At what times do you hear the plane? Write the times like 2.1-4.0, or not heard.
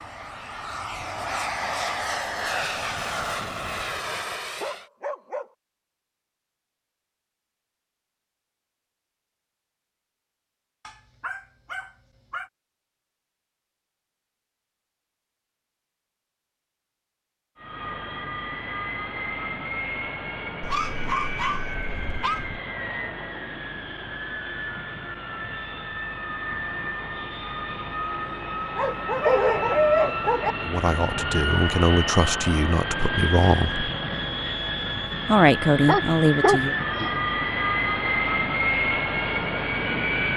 0.0-4.9, 17.6-40.3.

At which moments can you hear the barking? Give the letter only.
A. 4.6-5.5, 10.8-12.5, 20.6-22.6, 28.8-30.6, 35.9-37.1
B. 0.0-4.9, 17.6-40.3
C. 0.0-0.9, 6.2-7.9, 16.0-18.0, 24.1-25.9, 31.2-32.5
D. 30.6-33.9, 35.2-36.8
A.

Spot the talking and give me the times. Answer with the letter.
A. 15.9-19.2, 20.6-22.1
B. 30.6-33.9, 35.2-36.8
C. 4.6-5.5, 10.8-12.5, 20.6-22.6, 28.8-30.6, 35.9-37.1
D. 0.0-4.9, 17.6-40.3
B.